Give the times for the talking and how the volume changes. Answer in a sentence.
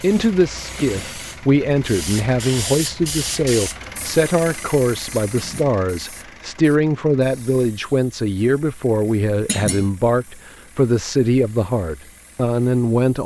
The talking can be heard from 0.0 to 13.2 s, at a steady volume.